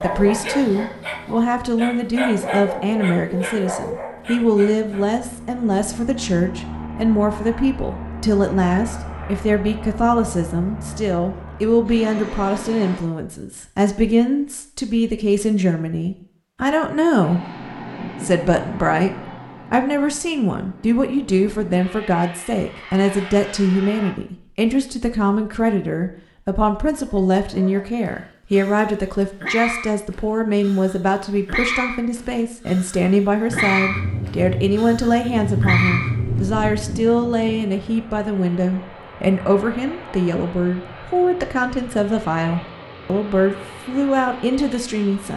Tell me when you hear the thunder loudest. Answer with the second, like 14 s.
36 s.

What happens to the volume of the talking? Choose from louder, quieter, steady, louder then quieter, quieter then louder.
steady.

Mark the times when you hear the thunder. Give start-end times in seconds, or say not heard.
33.5-37.0.